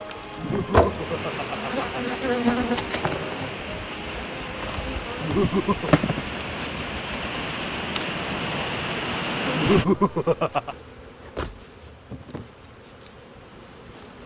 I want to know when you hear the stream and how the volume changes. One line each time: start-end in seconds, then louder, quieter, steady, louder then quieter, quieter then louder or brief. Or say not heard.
0.0-9.8 louder.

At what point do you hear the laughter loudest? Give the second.
10 s.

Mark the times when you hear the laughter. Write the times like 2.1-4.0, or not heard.
0.3-2.2, 5.2-6.0, 9.5-10.8.